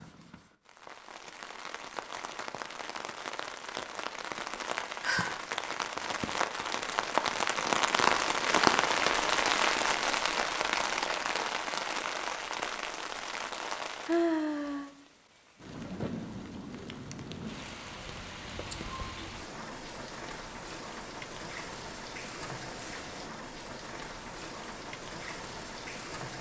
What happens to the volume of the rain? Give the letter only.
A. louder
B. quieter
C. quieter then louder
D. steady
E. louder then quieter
E.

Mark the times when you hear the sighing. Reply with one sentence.
You can hear the sighing from 5.0 to 5.5 s, from 14.1 to 14.9 s and from 18.7 to 19.3 s.